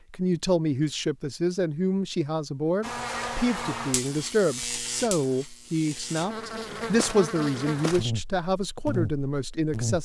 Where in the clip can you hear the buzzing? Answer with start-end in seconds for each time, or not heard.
2.8-9.9.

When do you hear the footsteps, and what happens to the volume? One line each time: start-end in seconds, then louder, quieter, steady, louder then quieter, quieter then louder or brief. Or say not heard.
not heard.